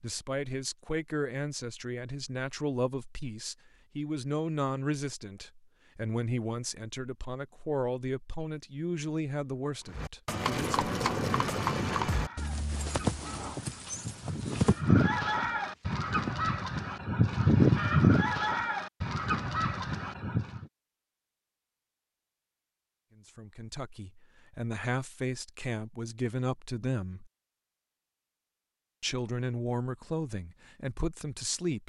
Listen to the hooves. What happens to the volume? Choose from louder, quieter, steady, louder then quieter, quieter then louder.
quieter.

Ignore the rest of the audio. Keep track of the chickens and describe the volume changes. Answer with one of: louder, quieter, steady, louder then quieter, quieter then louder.
louder then quieter.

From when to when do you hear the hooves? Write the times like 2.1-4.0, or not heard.
9.8-16.4.